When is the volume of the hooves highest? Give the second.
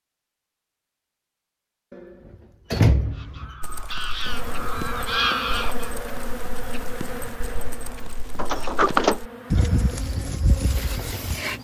10 s.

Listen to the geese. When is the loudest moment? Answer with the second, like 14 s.
5 s.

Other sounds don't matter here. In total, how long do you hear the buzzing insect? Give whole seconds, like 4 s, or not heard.
7 s.